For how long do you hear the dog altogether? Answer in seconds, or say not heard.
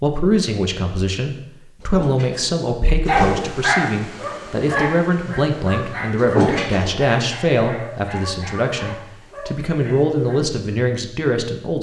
7 s.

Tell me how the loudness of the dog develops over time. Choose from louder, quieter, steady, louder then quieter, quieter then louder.
quieter.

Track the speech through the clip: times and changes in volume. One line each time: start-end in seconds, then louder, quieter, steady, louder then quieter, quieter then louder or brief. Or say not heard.
0.0-11.7 steady.